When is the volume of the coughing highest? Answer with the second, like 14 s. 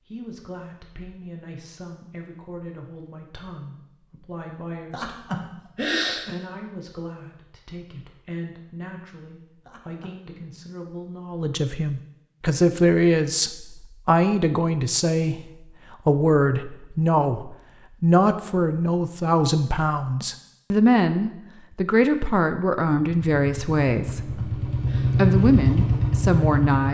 6 s.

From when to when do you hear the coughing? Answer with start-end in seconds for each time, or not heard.
4.9-6.3, 9.7-10.2, 24.1-25.1.